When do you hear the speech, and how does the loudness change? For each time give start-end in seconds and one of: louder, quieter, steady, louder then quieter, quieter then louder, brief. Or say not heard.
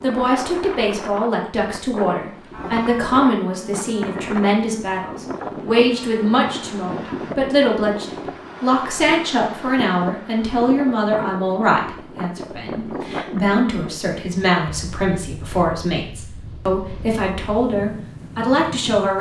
0.0-19.1 steady.